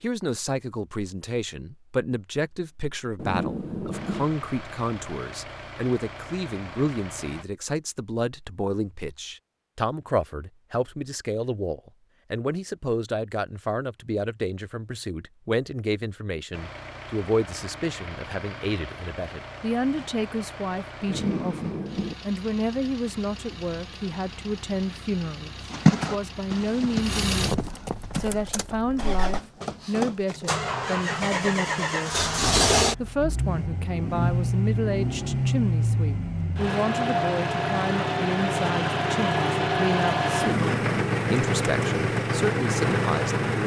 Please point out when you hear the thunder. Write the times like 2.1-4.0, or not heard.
3.1-4.2, 21.1-22.1, 40.4-41.2.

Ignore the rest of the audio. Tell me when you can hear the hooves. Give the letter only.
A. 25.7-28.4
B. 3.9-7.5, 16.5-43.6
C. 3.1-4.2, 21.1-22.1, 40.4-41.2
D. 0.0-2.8
A.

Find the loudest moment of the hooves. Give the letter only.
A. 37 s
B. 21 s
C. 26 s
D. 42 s
C.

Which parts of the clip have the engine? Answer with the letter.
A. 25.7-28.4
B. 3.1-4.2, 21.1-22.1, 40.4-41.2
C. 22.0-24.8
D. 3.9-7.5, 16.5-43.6
D.